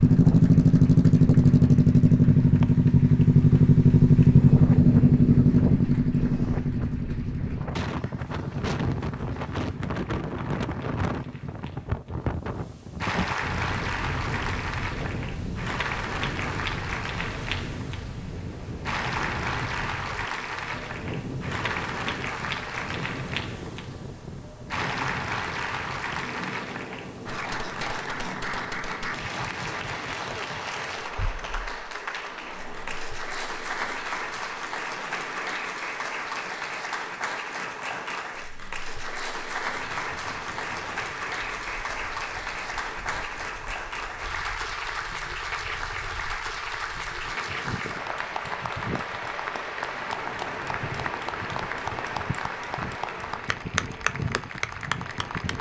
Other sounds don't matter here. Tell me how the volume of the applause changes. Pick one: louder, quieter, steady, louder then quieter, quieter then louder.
louder.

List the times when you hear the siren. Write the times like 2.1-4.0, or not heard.
not heard.